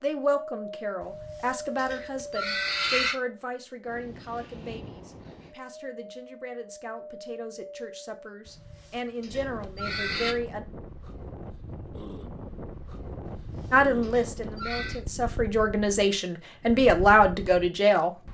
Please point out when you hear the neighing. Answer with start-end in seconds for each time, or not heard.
1.0-3.2, 8.4-10.3, 13.2-15.0.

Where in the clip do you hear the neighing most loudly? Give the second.
3 s.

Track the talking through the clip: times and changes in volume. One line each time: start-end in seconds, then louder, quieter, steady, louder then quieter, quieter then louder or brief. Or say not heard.
0.0-10.7 quieter then louder
13.7-18.1 louder.